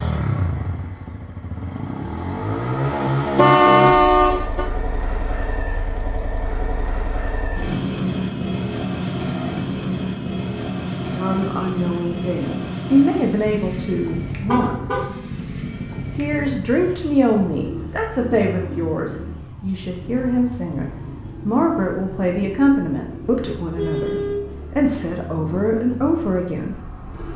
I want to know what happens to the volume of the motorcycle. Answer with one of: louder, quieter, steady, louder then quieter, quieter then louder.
quieter.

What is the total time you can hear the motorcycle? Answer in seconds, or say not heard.
27 s.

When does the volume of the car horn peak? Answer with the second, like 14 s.
4 s.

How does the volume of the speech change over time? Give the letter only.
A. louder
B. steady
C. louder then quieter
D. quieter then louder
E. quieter
B.